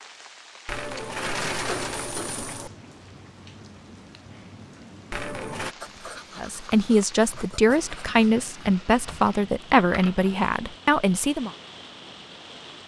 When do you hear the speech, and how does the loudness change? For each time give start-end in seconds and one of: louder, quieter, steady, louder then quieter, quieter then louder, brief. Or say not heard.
6.3-11.5 steady.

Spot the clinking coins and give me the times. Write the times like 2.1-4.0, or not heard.
0.7-2.7, 5.1-5.8, 9.4-10.5.